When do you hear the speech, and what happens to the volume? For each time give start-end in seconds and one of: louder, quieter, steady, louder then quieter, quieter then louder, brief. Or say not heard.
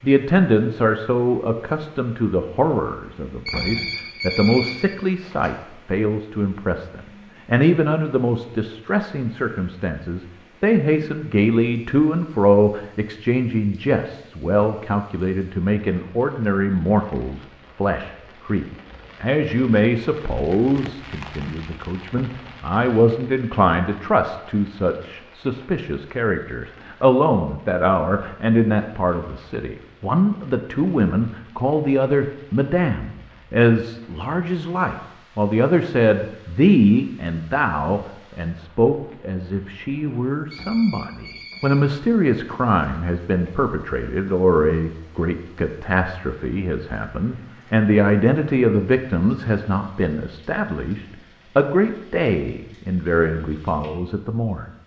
0.0-54.6 steady.